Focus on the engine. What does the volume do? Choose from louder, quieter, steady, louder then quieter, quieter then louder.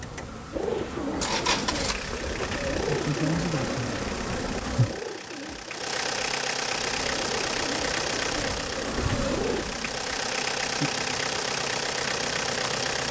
quieter then louder.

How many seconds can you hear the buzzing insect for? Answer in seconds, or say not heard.
11 s.